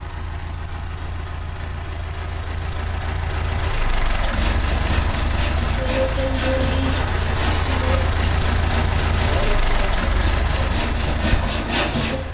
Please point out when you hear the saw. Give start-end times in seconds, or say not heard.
4.2-12.2.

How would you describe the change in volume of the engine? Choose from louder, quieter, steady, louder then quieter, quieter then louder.
louder.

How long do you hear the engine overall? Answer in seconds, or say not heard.
12 s.